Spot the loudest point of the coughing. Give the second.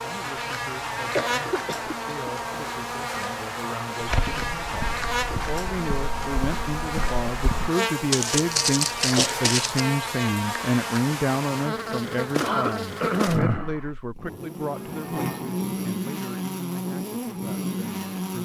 13 s.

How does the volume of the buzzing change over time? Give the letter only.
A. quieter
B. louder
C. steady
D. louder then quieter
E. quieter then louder
C.